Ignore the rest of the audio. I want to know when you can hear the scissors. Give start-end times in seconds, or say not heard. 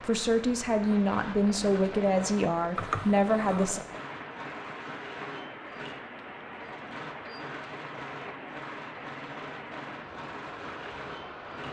2.8-3.7.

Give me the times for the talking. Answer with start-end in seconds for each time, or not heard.
0.0-3.8.